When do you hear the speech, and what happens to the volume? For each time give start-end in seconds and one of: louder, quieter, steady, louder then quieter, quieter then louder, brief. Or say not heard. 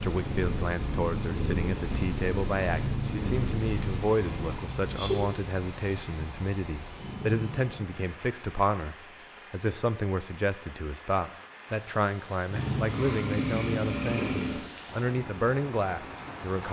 0.0-16.6 steady.